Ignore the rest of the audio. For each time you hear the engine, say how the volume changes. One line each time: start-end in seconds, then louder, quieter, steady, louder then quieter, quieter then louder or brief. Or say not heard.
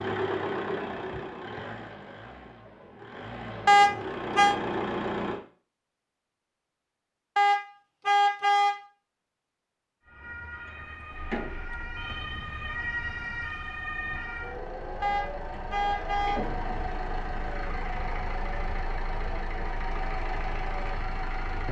0.0-5.4 quieter then louder
11.1-21.6 louder.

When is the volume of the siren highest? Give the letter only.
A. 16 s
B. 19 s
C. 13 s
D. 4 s
C.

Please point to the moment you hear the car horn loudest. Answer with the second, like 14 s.
4 s.